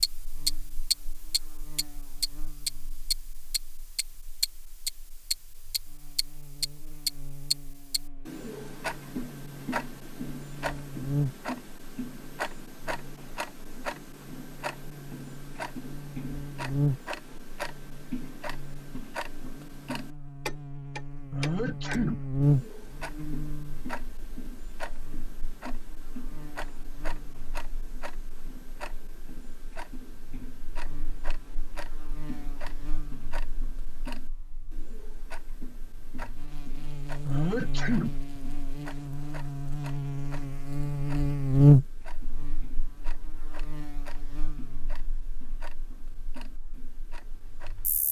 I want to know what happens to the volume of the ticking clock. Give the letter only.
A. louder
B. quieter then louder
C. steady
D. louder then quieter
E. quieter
E.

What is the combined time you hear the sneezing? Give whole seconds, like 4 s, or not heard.
2 s.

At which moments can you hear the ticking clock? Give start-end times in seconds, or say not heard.
0.0-48.0.